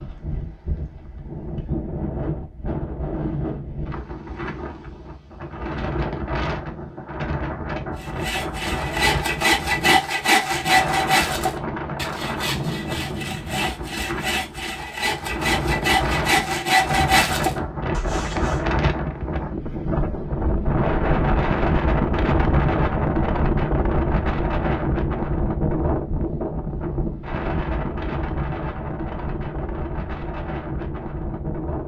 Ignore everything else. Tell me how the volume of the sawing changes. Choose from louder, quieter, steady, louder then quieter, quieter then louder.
quieter then louder.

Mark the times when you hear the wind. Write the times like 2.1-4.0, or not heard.
0.0-31.8.